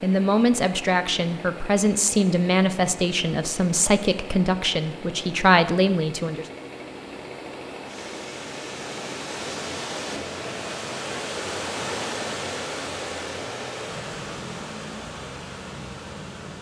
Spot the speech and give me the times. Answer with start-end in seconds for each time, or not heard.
0.0-6.5.